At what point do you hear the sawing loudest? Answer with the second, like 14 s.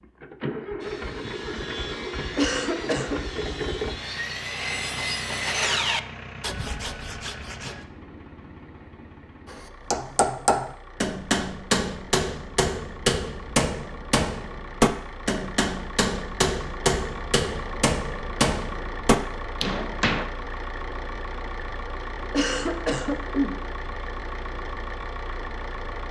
6 s.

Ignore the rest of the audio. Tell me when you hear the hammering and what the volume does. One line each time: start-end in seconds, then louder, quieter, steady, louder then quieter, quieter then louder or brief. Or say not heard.
9.4-20.2 steady.